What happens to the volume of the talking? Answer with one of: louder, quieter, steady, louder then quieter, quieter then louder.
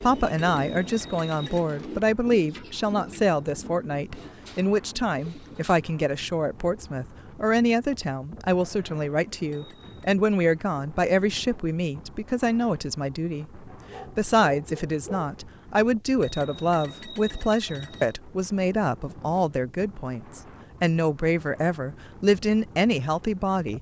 steady.